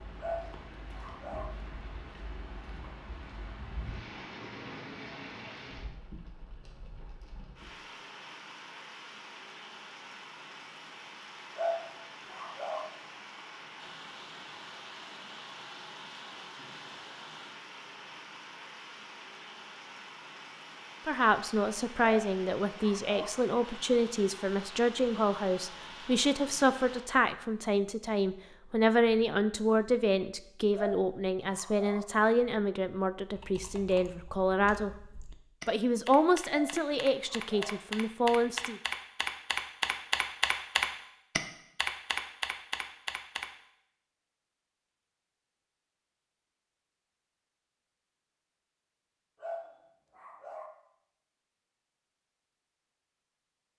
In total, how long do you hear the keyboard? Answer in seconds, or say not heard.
10 s.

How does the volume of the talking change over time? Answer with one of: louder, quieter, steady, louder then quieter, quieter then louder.
steady.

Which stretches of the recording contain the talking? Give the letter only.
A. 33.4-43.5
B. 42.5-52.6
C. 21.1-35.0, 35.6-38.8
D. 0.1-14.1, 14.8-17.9
C.